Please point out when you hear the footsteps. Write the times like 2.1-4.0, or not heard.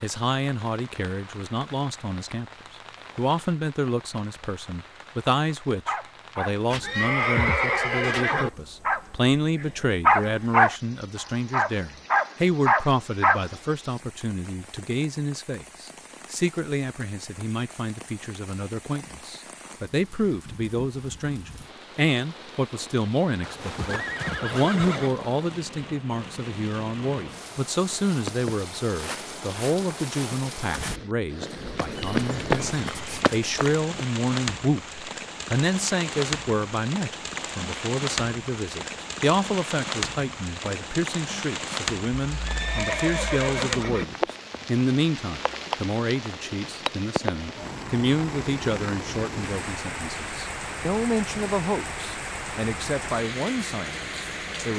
27.9-34.4.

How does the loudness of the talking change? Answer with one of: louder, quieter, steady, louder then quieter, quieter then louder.
steady.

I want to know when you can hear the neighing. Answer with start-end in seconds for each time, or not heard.
6.7-8.5, 23.4-25.1, 42.2-44.0.